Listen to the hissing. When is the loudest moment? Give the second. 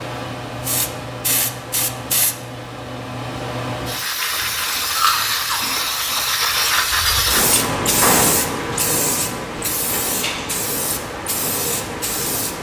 8 s.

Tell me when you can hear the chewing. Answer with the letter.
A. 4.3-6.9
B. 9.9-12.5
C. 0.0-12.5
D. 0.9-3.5
A.